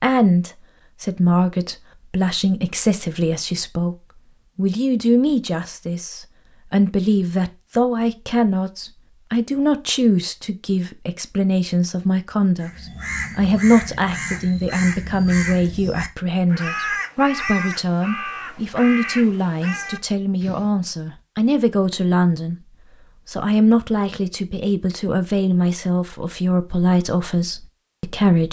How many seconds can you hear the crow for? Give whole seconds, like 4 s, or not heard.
8 s.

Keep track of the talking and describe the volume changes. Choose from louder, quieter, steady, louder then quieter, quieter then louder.
steady.